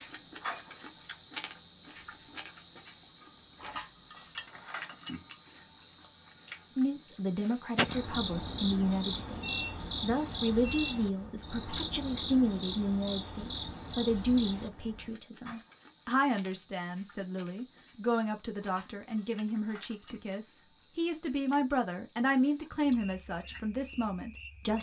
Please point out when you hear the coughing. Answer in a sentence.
You can hear the coughing from 7.8 to 8.4 s.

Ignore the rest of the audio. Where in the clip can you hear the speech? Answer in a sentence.
The speech can be heard from 6.8 to 24.7 s.